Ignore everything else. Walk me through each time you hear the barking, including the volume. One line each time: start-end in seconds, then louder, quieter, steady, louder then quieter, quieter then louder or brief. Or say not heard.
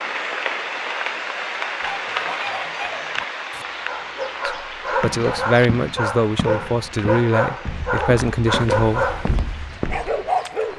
1.6-10.7 louder.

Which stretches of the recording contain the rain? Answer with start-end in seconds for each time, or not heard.
0.0-10.7.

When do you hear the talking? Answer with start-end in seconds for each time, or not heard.
4.5-9.1.